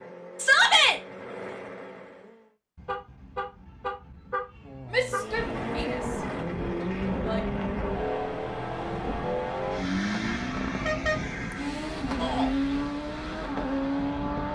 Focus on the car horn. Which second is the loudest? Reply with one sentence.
The volume of the car horn peaks at 11 seconds.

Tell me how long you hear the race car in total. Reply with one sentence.
You can hear the race car for 12 seconds altogether.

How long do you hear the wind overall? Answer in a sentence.
You can hear the wind for 9 seconds altogether.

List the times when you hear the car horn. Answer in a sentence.
The car horn can be heard from 2.8 to 5.3 s and from 10.7 to 11.2 s.